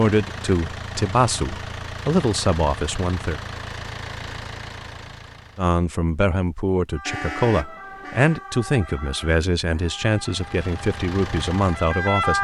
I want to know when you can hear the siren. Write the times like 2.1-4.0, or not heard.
6.9-12.3.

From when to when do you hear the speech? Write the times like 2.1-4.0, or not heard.
0.0-3.4, 5.5-12.3.